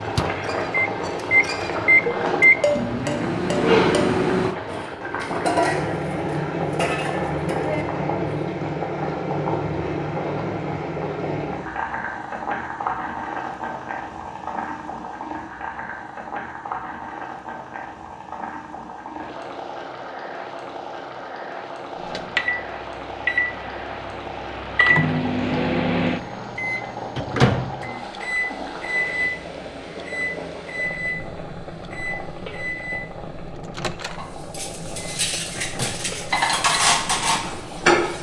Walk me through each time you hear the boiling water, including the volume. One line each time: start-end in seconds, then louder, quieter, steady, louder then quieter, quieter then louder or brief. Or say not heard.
0.0-38.1 quieter.